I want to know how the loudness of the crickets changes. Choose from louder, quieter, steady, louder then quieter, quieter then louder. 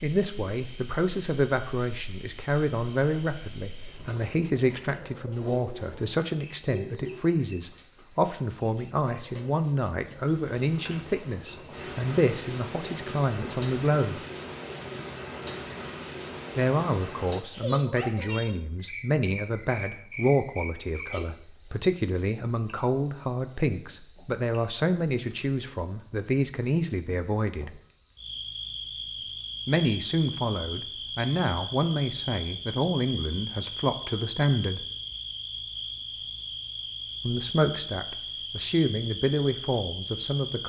steady.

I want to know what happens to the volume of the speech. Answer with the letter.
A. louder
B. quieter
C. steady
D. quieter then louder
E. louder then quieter
C.